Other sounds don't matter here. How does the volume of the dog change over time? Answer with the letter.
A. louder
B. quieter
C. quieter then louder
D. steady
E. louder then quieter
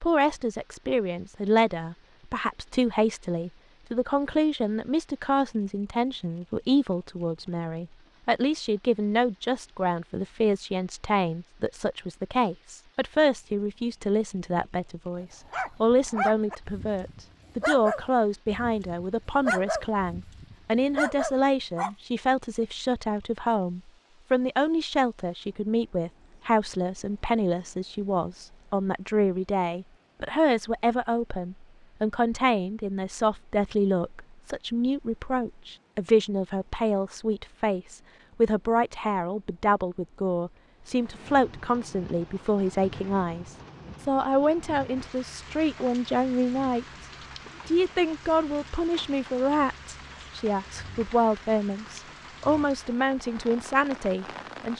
C.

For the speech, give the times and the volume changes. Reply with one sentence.
You can hear the speech from 0.0 to 47.0 s, at a steady volume; and from 47.6 to 54.7 s, at a steady volume.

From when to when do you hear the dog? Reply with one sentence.
The dog can be heard from 15.5 to 21.9 s.